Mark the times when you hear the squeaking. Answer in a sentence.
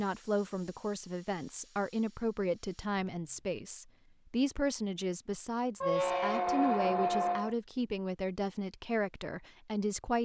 You can hear the squeaking from 2.9 to 3.5 s and from 5.8 to 7.5 s.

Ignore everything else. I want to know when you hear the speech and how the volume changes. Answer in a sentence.
The speech can be heard from 0.0 to 10.2 s, at a steady volume.